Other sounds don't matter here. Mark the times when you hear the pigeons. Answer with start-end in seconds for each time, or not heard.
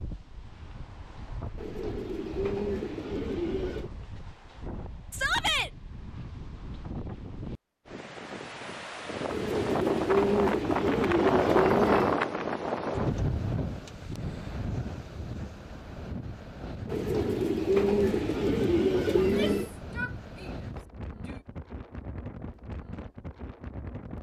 1.6-3.9, 9.2-12.2, 16.9-19.8.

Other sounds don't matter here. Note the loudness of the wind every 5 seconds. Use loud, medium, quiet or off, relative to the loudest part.
quiet, medium, loud, quiet, quiet.